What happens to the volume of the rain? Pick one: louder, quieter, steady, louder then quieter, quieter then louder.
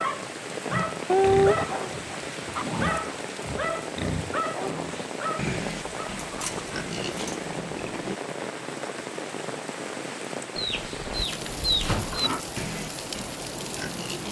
steady.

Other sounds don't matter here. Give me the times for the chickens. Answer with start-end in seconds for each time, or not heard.
1.1-2.7, 5.8-7.3, 10.6-12.3.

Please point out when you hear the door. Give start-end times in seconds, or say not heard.
11.8-12.2.